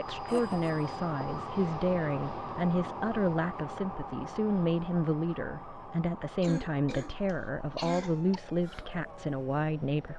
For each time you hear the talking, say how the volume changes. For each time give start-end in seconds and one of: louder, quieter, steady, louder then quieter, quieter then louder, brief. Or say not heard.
0.0-10.1 steady.